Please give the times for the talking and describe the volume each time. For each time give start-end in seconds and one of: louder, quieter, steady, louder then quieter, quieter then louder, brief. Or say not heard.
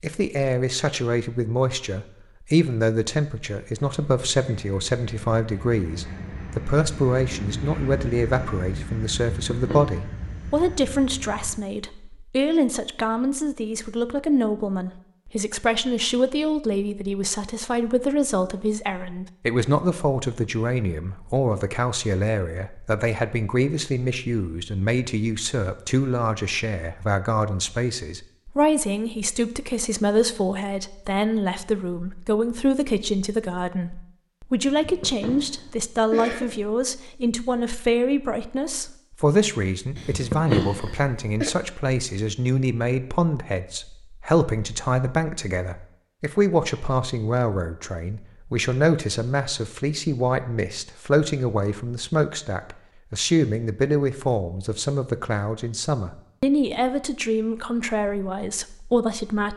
0.0-59.5 steady.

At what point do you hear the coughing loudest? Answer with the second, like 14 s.
40 s.